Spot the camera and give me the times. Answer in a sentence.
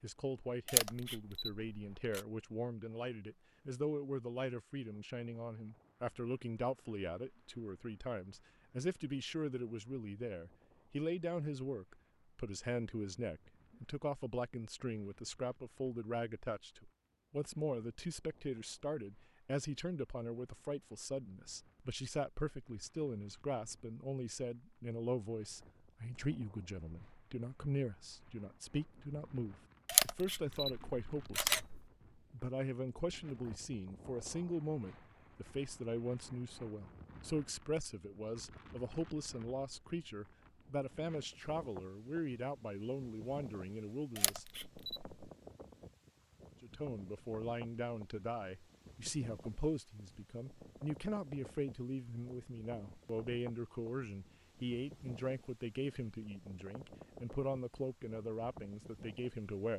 You can hear the camera from 0.7 to 2.2 s, from 29.9 to 31.8 s and from 44.1 to 45.0 s.